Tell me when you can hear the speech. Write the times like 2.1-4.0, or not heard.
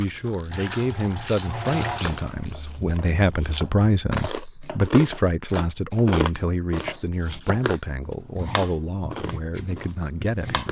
0.0-10.6.